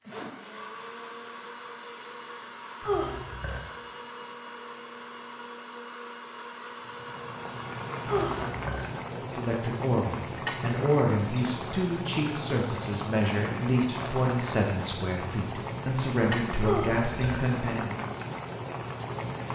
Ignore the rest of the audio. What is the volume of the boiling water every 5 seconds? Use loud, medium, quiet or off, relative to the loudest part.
off, loud, loud, loud.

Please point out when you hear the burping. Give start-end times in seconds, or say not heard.
2.8-3.6, 8.1-8.8, 16.6-17.4.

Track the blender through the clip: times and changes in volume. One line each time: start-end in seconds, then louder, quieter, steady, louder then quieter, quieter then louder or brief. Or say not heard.
0.0-8.5 steady.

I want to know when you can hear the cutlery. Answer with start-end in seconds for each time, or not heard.
not heard.